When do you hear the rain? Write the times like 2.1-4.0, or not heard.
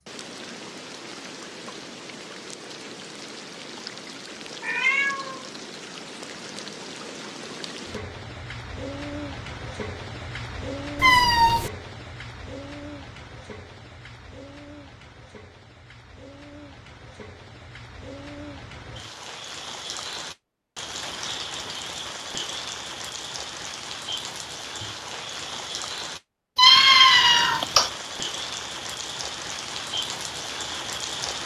0.0-31.4.